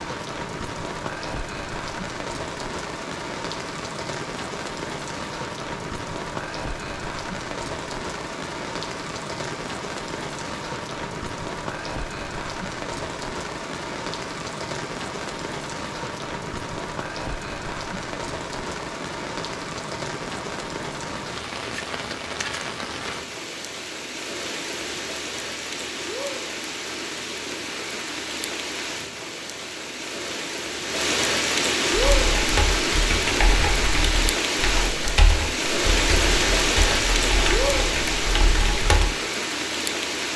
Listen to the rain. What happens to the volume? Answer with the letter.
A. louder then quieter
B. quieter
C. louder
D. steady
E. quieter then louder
C.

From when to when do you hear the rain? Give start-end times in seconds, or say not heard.
0.0-40.3.